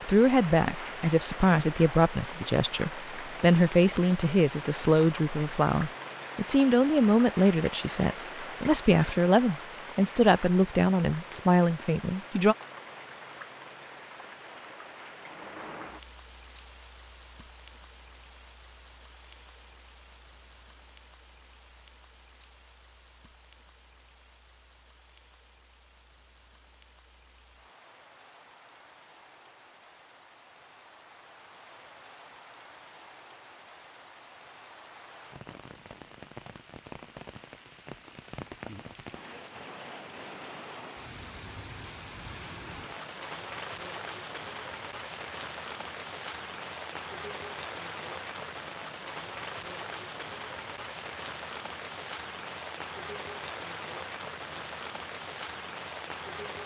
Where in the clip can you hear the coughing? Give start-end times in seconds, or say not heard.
not heard.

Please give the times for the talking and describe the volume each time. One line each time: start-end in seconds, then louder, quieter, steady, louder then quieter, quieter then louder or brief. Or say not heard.
0.0-12.6 steady.